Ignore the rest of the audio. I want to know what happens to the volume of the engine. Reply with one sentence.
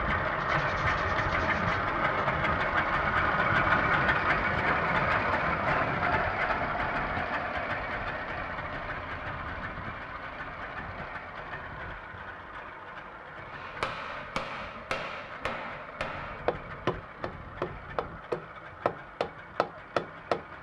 The loudness of the engine goes down.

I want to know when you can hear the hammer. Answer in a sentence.
You can hear the hammer from 13.5 to 20.4 s.